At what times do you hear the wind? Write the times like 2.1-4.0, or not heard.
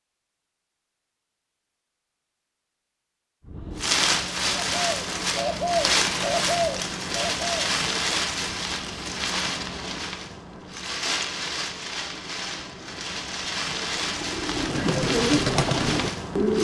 3.5-16.5.